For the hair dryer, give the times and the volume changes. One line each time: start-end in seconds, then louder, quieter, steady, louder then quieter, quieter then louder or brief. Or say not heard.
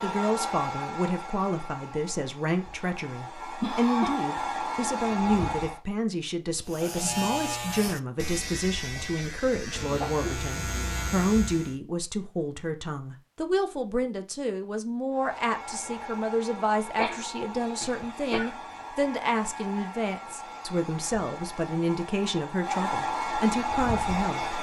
0.0-5.8 quieter then louder
15.1-24.5 louder.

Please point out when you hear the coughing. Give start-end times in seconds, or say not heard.
3.6-4.2, 8.9-10.3, 16.9-18.6.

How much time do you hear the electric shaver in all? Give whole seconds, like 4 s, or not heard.
5 s.